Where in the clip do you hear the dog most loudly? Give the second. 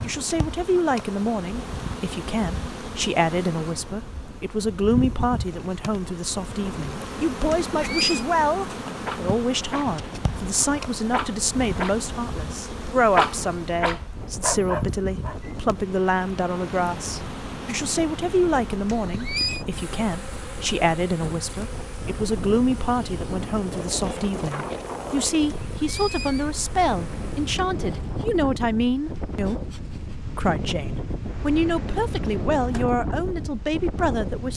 13 s.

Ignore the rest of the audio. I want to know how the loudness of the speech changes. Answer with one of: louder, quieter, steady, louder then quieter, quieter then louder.
steady.